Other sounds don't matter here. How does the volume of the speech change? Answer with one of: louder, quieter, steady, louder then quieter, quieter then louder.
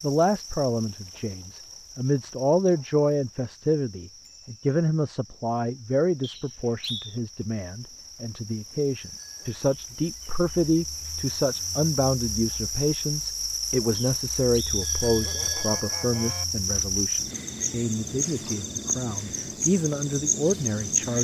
steady.